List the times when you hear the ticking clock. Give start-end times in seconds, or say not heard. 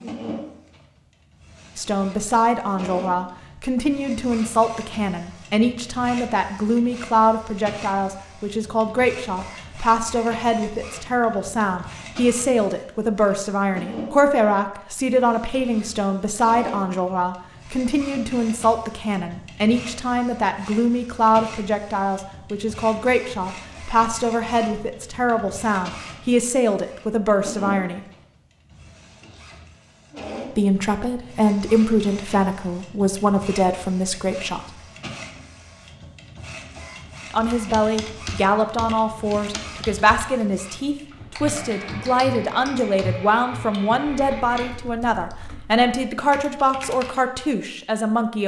not heard.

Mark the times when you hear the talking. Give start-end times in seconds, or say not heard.
1.8-28.1, 30.6-34.6, 37.3-48.4.